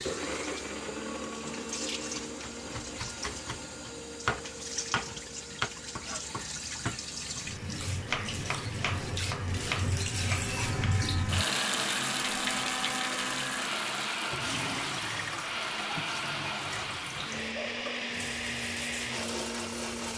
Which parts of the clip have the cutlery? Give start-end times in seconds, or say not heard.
not heard.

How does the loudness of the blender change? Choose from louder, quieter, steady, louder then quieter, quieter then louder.
quieter then louder.